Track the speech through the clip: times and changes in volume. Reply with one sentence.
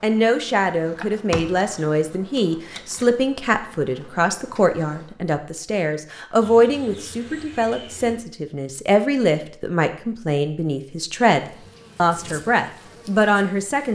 You can hear the speech from 0.0 to 13.9 s, at a steady volume.